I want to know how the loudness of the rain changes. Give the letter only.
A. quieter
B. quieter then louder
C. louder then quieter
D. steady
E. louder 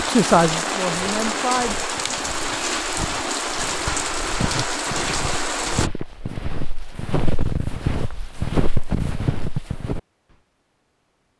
D.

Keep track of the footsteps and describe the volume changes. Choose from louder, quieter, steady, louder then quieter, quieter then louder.
louder.